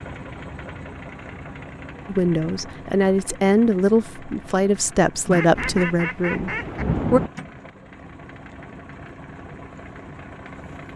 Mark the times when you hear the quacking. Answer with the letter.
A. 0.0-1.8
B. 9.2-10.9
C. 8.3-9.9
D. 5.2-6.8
D.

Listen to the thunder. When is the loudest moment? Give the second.
7 s.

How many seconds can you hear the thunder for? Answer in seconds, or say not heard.
2 s.